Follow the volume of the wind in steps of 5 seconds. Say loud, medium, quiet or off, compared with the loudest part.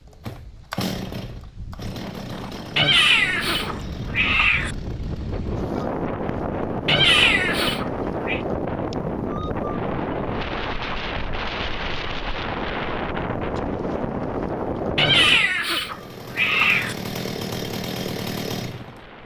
medium, loud, loud, medium.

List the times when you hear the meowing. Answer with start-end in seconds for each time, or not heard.
2.8-4.8, 6.8-8.4, 14.9-16.9.